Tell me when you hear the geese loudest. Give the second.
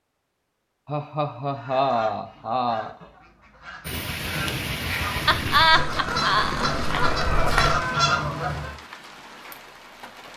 8 s.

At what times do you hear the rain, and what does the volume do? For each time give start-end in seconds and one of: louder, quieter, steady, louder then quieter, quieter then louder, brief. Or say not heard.
3.9-10.3 quieter.